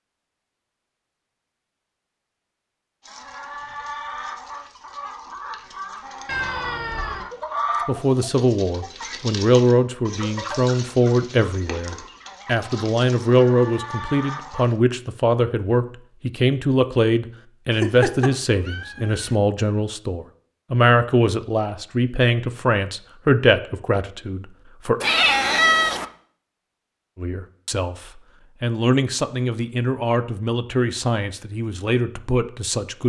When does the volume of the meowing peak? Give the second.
26 s.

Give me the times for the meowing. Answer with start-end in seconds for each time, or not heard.
6.2-7.3, 17.7-19.4, 25.0-26.1.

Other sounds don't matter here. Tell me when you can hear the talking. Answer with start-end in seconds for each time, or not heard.
7.8-25.0, 27.1-33.0.